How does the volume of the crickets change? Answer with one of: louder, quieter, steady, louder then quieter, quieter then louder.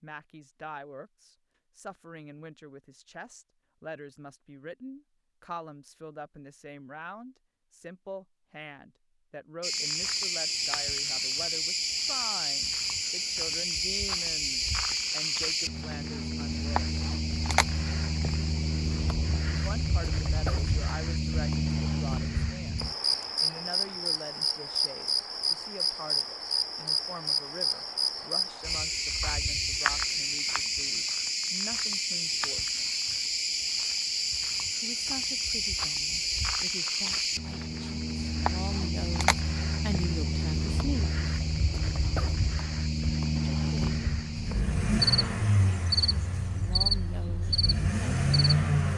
steady.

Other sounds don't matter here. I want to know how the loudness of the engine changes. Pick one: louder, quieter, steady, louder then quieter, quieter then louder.
quieter then louder.